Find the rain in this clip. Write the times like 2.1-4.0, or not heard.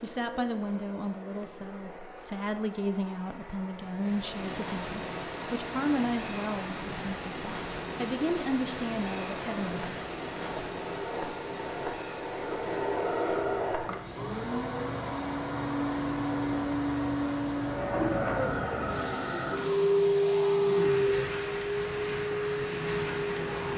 3.9-23.7.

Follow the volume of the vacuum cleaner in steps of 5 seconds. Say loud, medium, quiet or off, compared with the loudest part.
quiet, quiet, medium, loud, loud.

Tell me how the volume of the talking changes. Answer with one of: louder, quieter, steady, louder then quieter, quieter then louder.
steady.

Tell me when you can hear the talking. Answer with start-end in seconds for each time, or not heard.
0.0-10.1.